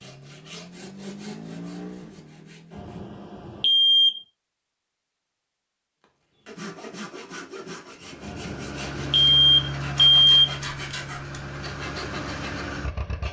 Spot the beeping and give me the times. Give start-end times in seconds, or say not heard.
2.8-4.1, 8.2-10.4.